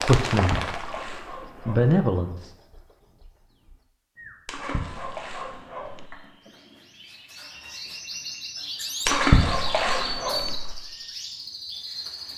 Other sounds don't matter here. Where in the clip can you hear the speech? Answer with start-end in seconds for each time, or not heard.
0.0-0.7, 1.4-2.5.